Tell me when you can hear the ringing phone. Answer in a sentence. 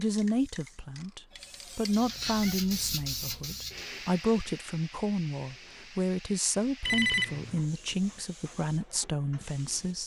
You can hear the ringing phone from 1.3 to 2.6 s and from 6.8 to 7.6 s.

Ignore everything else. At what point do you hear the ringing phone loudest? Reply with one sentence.
The volume of the ringing phone peaks at 7 seconds.